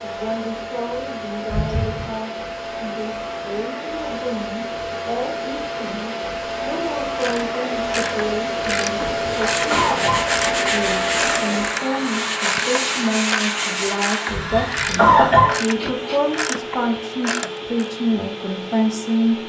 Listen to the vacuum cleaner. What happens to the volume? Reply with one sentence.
The volume of the vacuum cleaner goes up, then down.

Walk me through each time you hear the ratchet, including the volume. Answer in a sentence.
The ratchet can be heard from 7.2 to 17.9 s, at a steady volume.